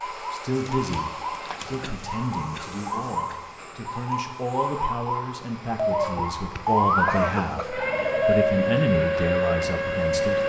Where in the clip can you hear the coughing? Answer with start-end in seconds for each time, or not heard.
1.8-3.4, 7.0-7.8.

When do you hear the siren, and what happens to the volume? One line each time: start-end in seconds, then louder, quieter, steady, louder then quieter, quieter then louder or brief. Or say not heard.
0.0-10.4 louder.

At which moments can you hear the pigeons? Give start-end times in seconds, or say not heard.
0.6-1.9, 5.8-8.4.